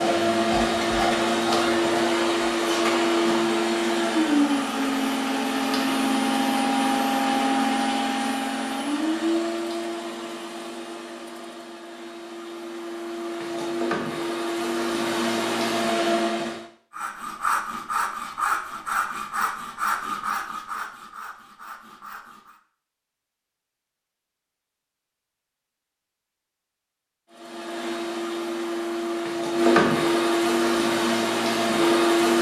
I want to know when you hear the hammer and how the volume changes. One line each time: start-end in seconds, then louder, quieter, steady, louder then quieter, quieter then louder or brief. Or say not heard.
not heard.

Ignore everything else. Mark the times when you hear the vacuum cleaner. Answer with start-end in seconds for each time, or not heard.
0.0-16.6, 27.3-32.3.